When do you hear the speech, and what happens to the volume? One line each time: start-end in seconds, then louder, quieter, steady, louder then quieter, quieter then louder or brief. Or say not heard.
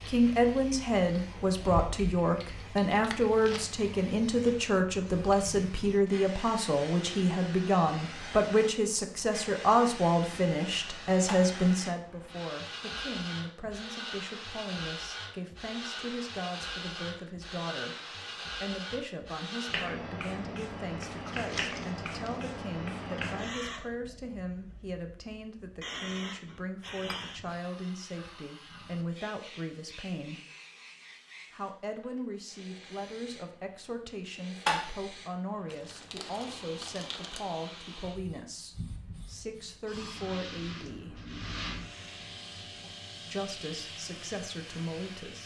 0.1-30.4 quieter
31.5-41.2 steady
43.2-45.4 brief.